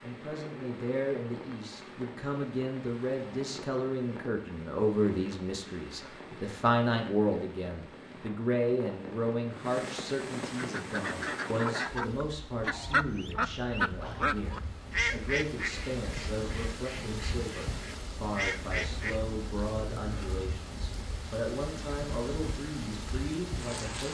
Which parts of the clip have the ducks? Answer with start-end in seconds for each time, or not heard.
10.6-19.2.